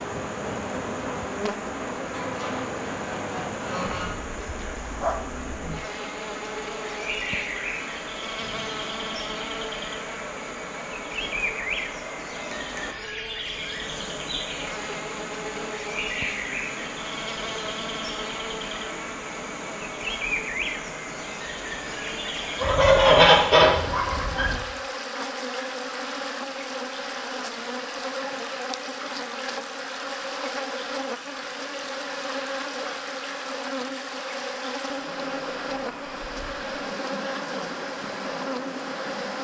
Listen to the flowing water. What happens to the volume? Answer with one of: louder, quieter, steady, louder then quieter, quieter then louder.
steady.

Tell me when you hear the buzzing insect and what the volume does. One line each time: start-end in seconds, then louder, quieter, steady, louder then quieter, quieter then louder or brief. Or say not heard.
0.0-39.3 steady.